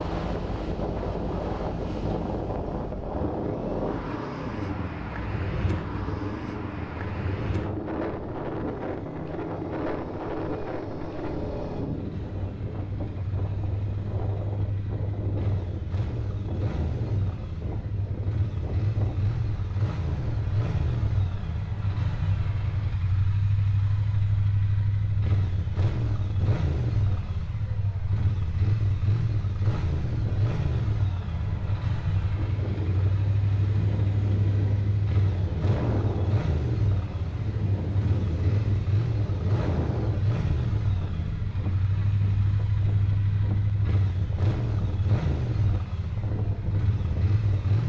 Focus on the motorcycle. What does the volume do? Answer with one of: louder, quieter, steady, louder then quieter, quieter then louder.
louder.